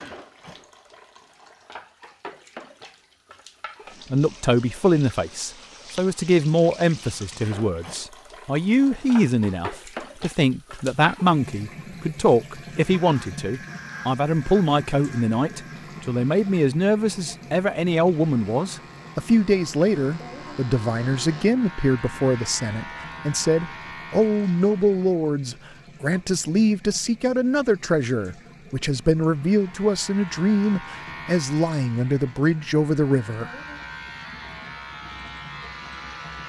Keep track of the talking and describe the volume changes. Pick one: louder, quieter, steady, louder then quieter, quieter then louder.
steady.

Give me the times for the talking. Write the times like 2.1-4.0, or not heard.
4.1-33.5.